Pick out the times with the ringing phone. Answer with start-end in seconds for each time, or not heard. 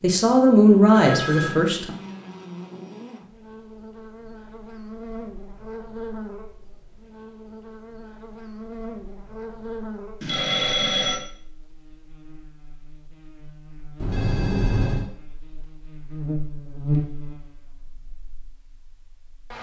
0.9-1.6, 10.2-11.2, 13.9-15.1.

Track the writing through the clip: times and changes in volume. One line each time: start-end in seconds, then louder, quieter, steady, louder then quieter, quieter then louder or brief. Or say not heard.
not heard.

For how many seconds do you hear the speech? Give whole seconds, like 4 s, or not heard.
2 s.